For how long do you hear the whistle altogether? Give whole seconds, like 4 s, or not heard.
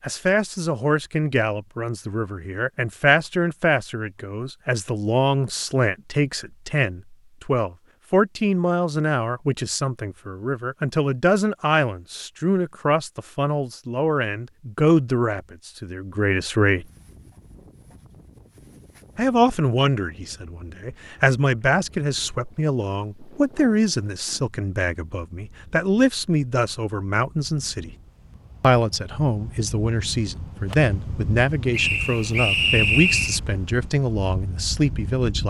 2 s.